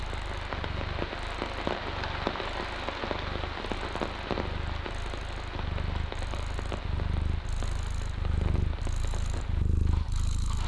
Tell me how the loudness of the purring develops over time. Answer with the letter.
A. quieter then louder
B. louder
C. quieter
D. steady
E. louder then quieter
B.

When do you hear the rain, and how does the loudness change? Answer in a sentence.
You can hear the rain from 0.0 to 10.6 s, getting quieter.